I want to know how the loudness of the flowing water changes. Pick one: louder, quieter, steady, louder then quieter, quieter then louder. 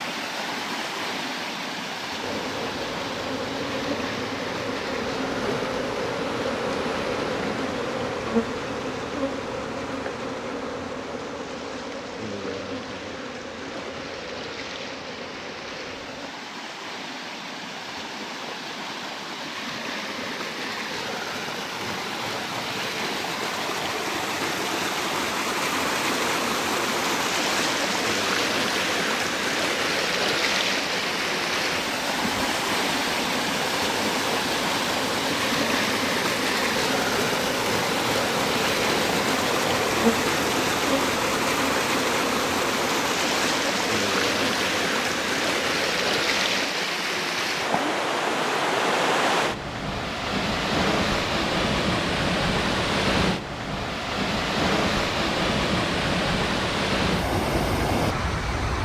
louder.